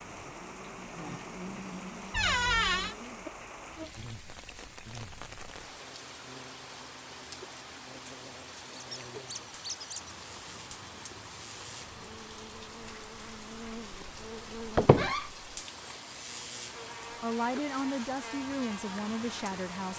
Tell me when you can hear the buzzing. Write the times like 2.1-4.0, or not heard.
0.0-19.9.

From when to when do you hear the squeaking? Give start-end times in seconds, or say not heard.
2.1-3.0, 8.8-10.2, 14.8-15.2.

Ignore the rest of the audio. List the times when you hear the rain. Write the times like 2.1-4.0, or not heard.
0.0-19.9.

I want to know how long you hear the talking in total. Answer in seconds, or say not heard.
3 s.